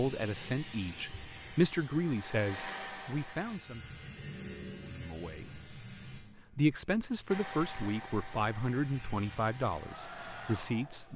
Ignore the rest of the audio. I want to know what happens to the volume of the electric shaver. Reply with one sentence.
The loudness of the electric shaver goes down, then up.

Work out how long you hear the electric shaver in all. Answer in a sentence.
The electric shaver can be heard for 11 seconds in total.